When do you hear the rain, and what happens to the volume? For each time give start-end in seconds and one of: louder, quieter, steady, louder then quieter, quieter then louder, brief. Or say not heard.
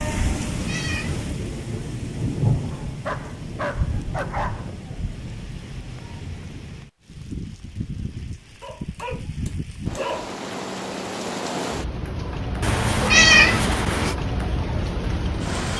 0.0-15.7 quieter then louder.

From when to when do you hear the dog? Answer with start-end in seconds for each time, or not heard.
2.7-4.7, 8.6-10.3.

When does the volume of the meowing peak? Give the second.
13 s.